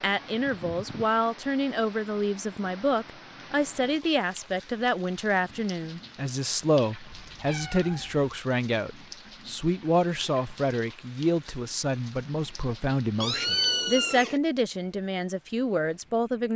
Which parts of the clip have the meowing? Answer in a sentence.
The meowing can be heard from 0.1 to 1.1 s, from 7.1 to 8.3 s and from 13.2 to 14.4 s.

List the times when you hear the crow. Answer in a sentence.
You can't hear the crow here.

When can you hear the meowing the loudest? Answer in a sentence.
The loudest moment of the meowing is at 14 seconds.